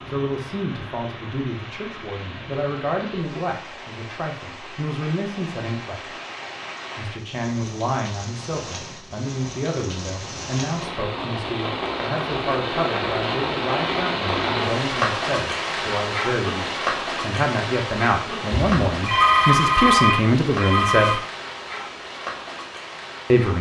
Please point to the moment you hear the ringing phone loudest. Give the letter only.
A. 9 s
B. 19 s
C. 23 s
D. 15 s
B.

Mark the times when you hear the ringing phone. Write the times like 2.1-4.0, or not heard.
18.5-21.2.